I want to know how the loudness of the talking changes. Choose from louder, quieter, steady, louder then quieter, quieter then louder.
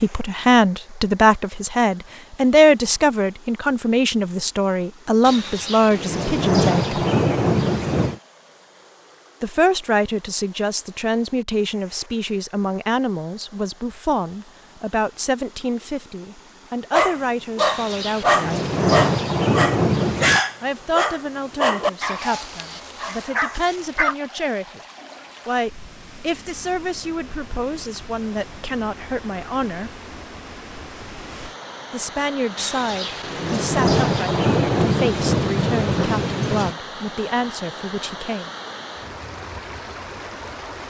quieter.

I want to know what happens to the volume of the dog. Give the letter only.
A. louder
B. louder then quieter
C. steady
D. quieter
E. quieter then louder
D.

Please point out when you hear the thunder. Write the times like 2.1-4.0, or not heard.
5.2-8.2, 17.6-20.4, 32.5-36.8.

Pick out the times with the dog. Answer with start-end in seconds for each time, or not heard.
16.9-24.1.